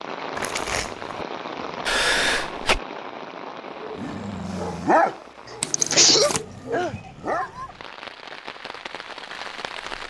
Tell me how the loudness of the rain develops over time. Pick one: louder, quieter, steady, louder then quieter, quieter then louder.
quieter then louder.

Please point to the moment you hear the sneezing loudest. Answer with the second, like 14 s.
6 s.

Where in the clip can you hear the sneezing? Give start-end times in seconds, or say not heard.
1.9-2.8, 5.7-7.0.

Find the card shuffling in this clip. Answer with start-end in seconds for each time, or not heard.
0.3-1.2, 5.6-6.5.